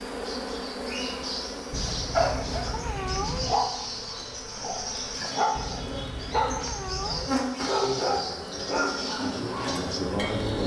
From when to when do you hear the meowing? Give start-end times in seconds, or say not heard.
1.7-3.6, 5.5-7.4.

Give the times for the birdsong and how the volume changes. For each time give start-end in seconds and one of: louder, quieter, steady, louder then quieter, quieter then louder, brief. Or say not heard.
0.1-10.6 steady.